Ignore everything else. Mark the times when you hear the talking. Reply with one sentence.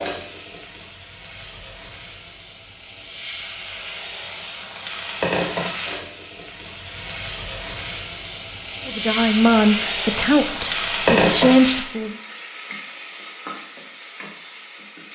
You can hear the talking from 8.8 to 12.2 s.